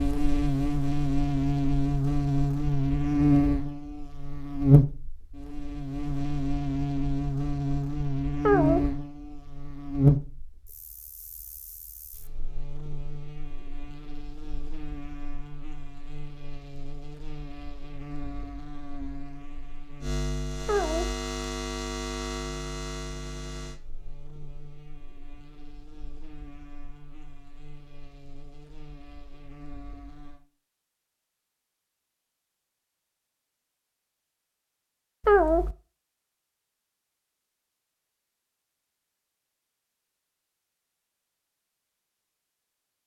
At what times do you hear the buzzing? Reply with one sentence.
You can hear the buzzing from 0.0 to 30.4 s.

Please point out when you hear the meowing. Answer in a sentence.
The meowing can be heard from 8.4 to 8.9 s, from 20.6 to 21.1 s and from 35.2 to 35.8 s.